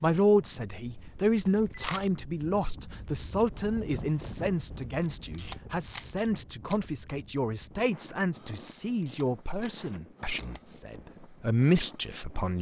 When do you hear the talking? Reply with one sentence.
You can hear the talking from 0.0 to 12.5 s.